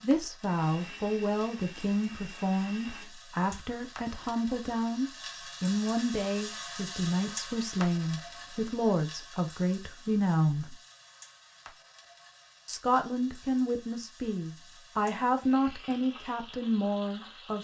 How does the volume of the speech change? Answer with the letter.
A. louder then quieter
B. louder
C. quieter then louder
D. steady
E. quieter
D.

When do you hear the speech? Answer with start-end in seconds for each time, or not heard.
0.0-10.8, 12.7-17.5.